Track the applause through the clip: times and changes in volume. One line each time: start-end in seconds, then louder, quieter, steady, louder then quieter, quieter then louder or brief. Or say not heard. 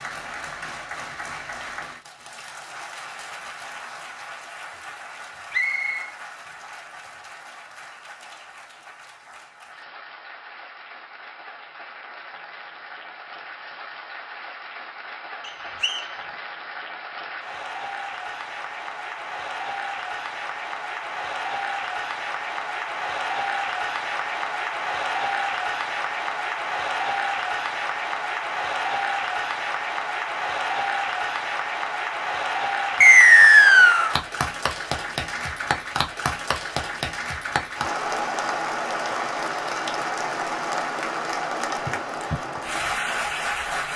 0.0-43.9 louder.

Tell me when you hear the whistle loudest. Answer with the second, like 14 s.
33 s.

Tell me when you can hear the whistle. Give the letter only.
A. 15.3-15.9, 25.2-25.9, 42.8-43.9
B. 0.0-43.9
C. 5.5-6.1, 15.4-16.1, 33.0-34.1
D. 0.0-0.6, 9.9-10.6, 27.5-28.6
C.